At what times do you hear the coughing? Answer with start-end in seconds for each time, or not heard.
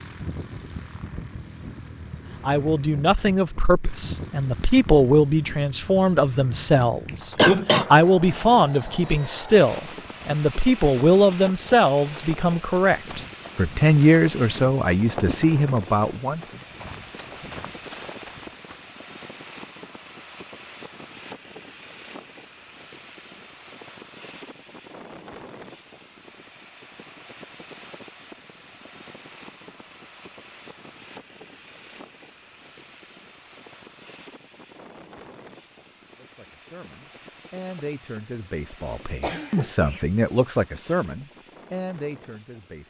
6.7-7.8, 39.0-40.0.